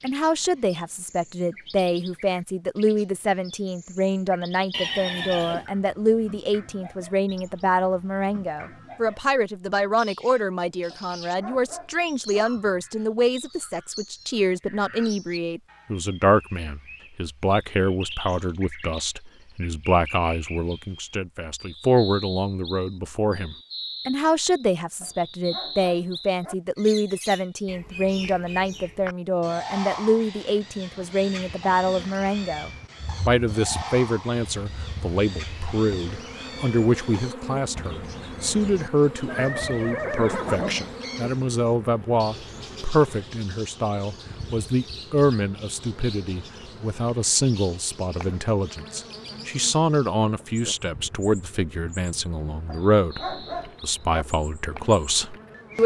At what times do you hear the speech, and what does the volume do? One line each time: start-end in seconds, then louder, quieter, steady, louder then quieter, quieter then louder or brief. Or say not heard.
0.0-55.8 steady.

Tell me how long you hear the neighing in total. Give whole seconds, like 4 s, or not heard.
3 s.